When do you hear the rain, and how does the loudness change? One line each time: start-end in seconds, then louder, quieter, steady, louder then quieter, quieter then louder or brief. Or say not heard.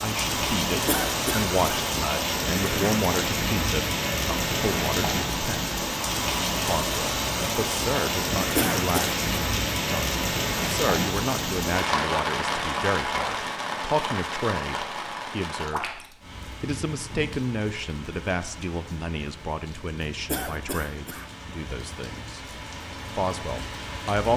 0.0-24.3 quieter.